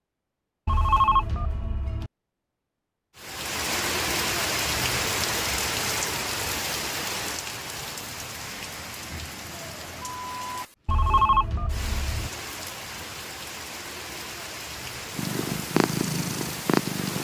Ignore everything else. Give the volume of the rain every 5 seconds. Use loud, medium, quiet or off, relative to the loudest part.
loud, loud, medium, medium.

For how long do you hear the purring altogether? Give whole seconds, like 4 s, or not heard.
2 s.